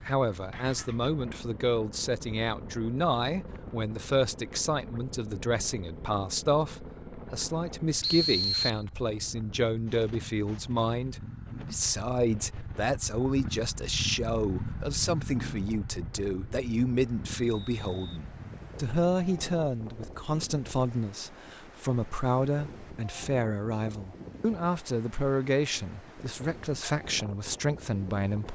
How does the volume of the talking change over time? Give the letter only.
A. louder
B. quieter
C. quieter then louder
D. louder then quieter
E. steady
E.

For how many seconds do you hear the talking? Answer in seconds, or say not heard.
28 s.